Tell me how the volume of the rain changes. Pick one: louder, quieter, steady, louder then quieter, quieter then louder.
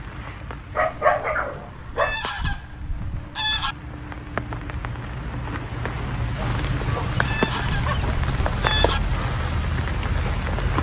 louder.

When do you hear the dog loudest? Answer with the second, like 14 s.
1 s.